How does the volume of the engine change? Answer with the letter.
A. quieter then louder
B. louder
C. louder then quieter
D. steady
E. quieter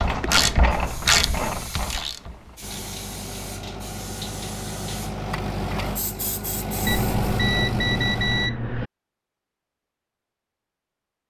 B.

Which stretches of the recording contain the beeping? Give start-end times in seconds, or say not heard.
6.8-8.8.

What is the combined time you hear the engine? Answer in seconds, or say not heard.
6 s.